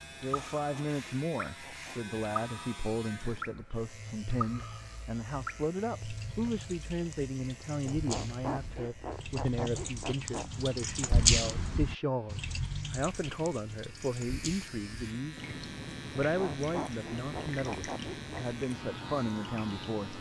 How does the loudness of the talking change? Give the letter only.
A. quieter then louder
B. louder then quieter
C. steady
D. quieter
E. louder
C.